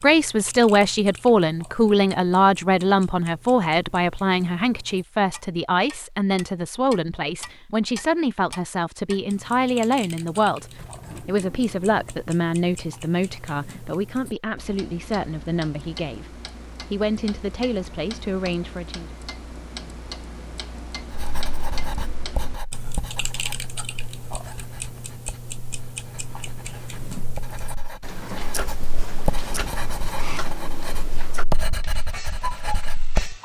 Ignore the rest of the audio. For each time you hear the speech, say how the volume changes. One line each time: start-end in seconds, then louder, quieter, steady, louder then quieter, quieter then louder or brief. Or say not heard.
0.0-19.1 quieter.